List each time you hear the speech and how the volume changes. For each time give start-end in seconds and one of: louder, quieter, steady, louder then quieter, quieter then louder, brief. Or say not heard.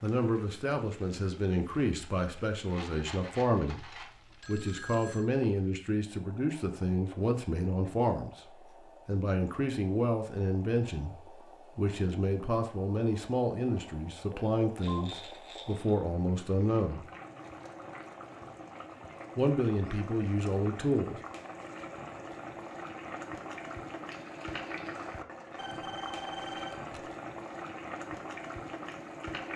0.0-17.1 steady
19.4-21.2 brief.